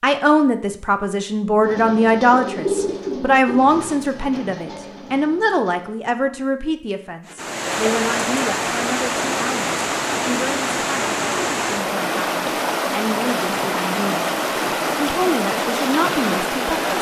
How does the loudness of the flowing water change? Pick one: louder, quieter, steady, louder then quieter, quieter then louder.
steady.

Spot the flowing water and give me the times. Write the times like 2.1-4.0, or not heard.
7.2-16.9.